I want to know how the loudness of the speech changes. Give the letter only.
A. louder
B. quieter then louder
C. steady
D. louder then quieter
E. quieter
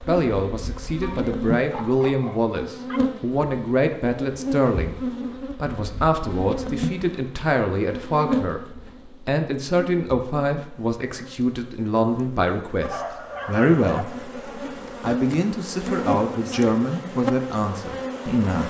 C.